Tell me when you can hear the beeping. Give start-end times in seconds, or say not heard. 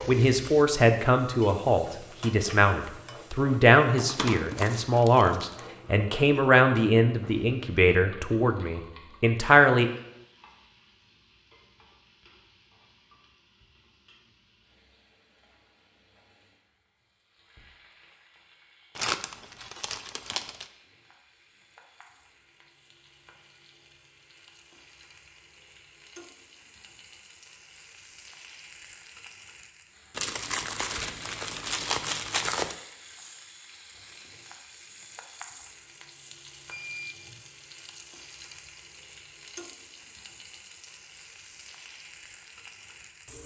36.7-37.4.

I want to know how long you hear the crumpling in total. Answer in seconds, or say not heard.
6 s.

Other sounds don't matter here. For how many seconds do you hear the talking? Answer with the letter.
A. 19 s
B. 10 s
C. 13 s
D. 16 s
B.